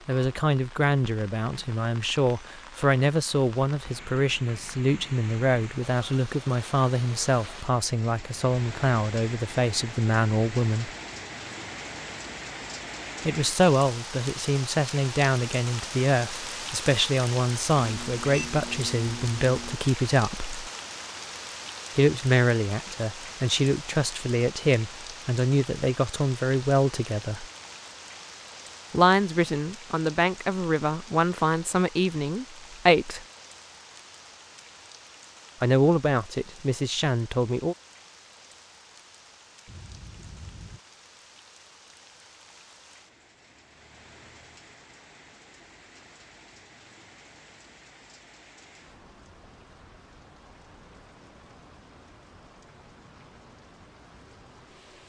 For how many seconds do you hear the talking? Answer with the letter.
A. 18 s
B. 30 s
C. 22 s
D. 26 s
B.